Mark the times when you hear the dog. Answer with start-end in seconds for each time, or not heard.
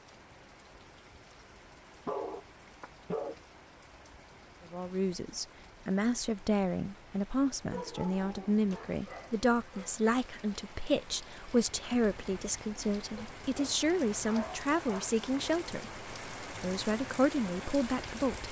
2.0-3.4, 7.7-9.9, 13.2-15.1.